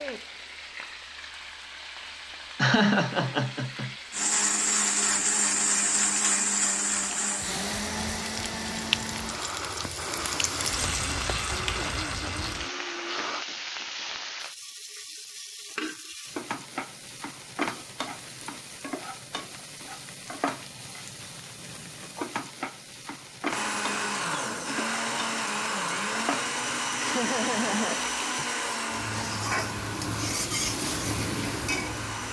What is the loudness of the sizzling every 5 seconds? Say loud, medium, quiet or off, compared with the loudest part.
medium, loud, loud, medium, medium, medium, loud.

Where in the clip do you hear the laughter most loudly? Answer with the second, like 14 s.
3 s.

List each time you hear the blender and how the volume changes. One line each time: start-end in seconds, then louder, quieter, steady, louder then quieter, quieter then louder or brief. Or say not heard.
4.1-13.4 quieter
23.4-32.2 quieter.